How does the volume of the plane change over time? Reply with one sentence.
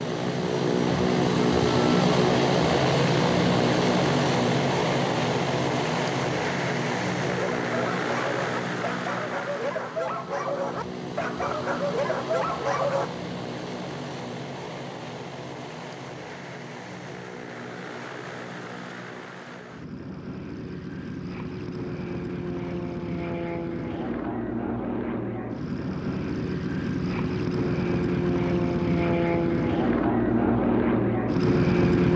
The loudness of the plane goes down, then up.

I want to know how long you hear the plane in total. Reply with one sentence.
The plane can be heard for 32 seconds in total.